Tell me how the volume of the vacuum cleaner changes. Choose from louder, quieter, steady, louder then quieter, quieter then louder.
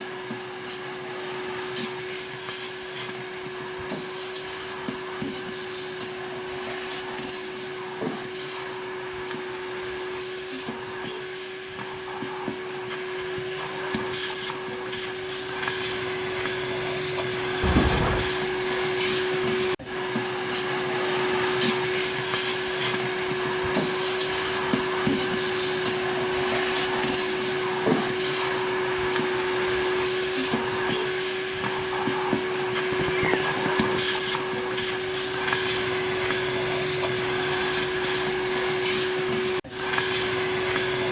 louder.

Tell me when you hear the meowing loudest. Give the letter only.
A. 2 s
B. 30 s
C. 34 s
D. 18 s
D.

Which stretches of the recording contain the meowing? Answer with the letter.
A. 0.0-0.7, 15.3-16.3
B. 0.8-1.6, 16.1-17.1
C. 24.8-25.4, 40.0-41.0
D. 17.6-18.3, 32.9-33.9
D.